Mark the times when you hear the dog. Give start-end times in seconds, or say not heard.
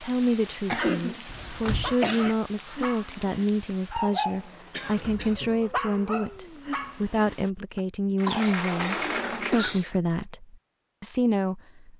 1.6-7.8.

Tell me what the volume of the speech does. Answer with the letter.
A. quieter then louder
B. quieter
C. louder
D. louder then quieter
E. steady
E.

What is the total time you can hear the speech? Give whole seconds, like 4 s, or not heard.
12 s.